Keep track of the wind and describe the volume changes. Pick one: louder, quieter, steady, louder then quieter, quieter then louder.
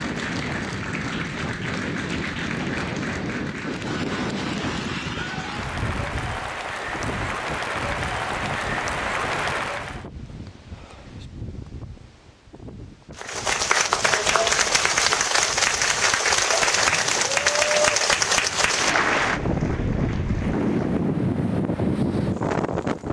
quieter then louder.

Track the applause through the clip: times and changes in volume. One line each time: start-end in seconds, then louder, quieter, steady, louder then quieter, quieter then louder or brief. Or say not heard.
0.0-10.1 louder
13.2-21.2 quieter.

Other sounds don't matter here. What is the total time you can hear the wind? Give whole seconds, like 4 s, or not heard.
23 s.